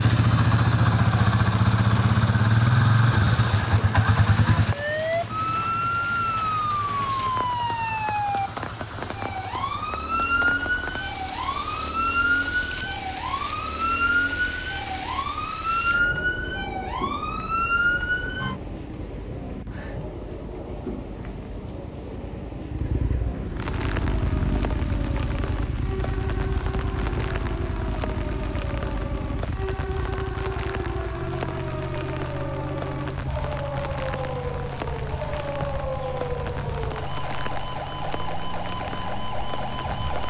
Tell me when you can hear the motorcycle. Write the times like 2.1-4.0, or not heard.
0.0-40.2.